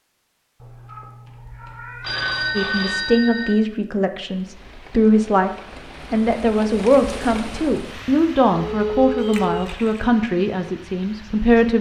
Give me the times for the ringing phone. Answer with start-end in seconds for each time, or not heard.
2.0-3.5, 8.7-9.7.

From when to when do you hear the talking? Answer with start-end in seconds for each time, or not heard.
2.5-5.5, 6.1-11.7.